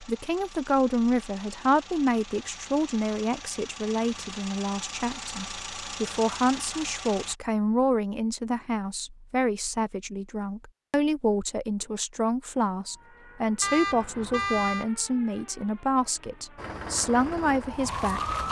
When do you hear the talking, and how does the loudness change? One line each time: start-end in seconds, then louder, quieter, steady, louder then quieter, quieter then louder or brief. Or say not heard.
0.0-18.2 steady.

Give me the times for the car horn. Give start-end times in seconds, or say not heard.
13.6-14.8.